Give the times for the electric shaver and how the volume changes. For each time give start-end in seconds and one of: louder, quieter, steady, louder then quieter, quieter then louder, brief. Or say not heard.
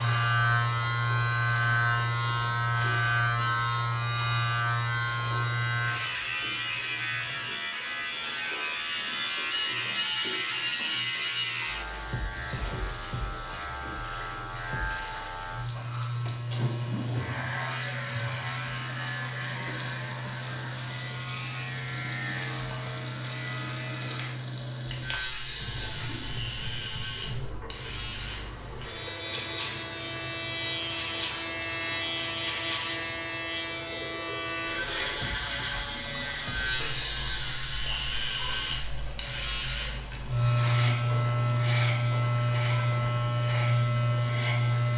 0.0-44.9 quieter then louder.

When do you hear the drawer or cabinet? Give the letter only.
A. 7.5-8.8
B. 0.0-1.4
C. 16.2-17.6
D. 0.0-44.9
C.